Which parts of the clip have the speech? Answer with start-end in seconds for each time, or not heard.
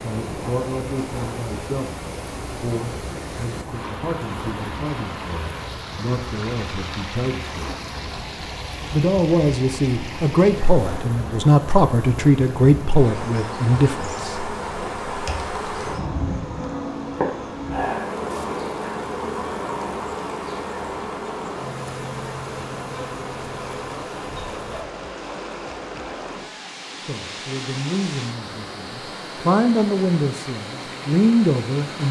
0.0-7.8, 8.9-14.4, 27.1-32.0.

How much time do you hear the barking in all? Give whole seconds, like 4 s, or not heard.
not heard.